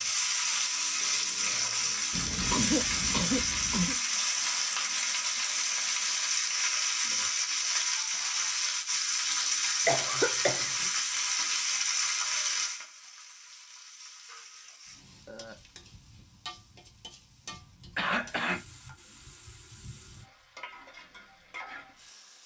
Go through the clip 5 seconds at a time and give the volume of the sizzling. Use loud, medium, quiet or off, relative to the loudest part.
loud, loud, loud, quiet, quiet.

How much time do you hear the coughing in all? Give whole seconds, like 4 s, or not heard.
4 s.